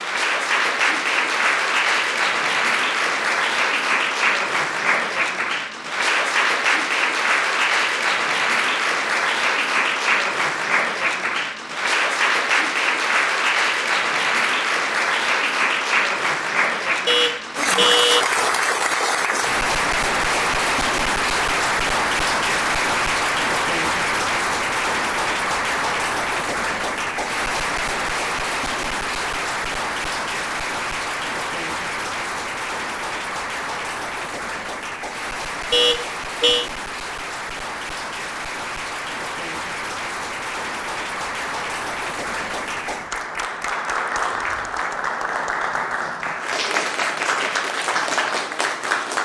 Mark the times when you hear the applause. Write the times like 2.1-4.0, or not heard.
0.0-49.1.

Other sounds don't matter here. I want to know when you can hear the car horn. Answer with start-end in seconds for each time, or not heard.
17.1-18.2, 35.7-36.7.